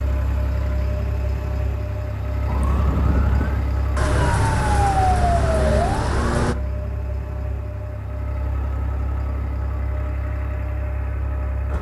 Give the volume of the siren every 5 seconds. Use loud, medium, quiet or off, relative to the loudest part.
loud, loud, off.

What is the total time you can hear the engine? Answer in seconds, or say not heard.
12 s.